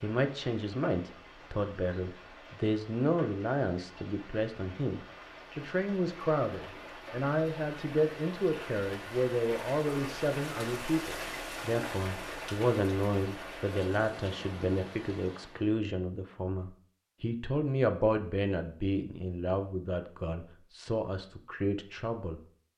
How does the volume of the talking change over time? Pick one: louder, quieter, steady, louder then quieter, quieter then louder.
steady.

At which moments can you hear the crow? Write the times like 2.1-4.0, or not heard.
not heard.